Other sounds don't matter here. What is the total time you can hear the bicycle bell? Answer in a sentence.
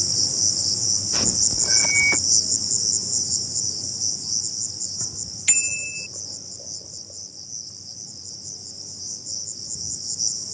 The bicycle bell can be heard for 2 seconds in total.